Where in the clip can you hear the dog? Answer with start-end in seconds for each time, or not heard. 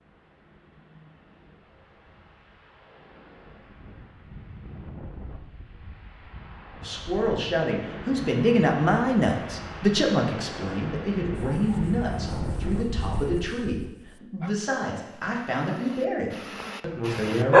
11.3-17.5.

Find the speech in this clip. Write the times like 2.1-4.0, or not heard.
6.8-17.5.